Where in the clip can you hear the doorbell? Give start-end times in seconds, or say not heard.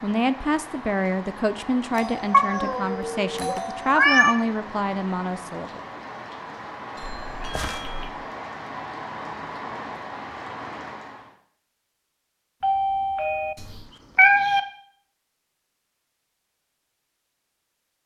1.9-4.0, 7.0-8.1, 12.6-13.6.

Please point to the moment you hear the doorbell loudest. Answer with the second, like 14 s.
13 s.